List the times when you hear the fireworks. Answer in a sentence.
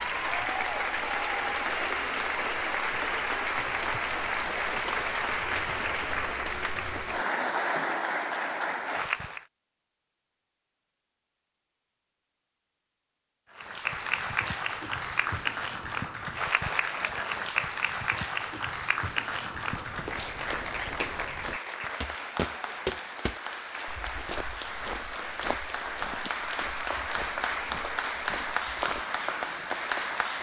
You can't hear the fireworks here.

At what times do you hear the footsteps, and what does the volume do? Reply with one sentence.
The footsteps can be heard from 19.7 to 29.1 s, getting louder then quieter.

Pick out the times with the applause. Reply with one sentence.
You can hear the applause from 0.0 to 9.4 s and from 13.5 to 30.3 s.